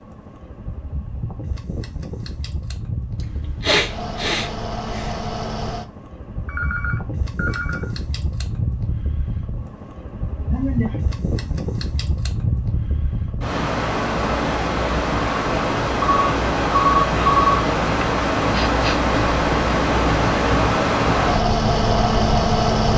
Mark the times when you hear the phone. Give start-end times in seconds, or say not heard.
6.5-7.9, 16.0-17.6.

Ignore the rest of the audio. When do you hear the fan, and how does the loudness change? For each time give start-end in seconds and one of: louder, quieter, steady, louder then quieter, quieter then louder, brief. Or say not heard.
0.0-22.9 louder.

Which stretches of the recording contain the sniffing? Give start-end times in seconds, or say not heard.
3.2-5.3, 10.4-10.9, 17.9-19.0.